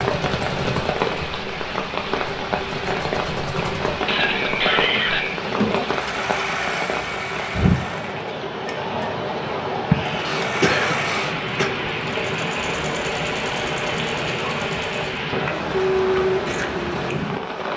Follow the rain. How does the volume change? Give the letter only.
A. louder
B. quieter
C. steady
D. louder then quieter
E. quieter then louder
C.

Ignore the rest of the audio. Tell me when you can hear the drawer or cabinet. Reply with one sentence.
The drawer or cabinet can't be heard in this clip.